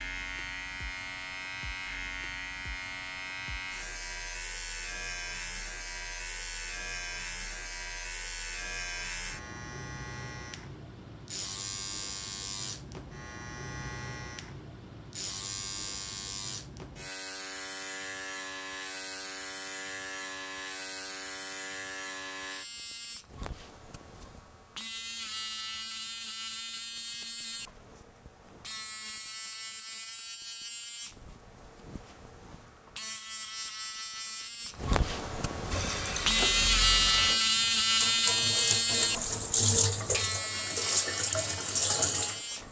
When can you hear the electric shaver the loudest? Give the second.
37 s.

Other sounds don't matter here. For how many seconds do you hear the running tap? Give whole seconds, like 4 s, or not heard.
7 s.